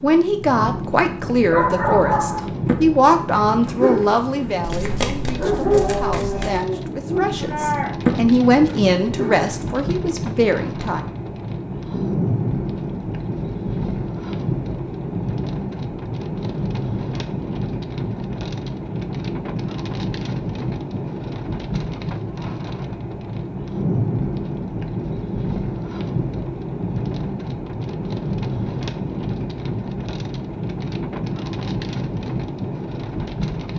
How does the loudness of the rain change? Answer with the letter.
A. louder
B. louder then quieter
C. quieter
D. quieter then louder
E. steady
E.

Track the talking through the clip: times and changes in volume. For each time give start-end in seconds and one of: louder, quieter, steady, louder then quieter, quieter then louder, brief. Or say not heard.
0.0-11.0 quieter then louder.